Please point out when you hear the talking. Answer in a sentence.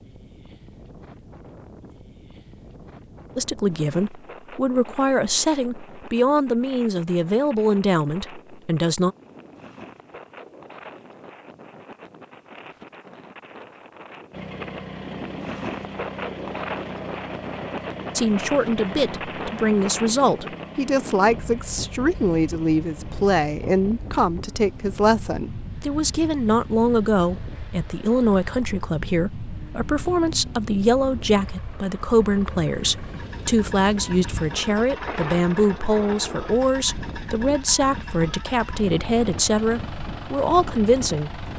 The talking can be heard from 3.4 to 9.2 s and from 18.1 to 41.4 s.